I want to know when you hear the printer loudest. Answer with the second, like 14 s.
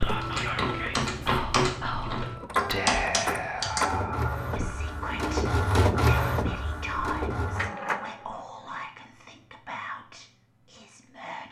6 s.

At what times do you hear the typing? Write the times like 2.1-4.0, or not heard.
0.0-3.9.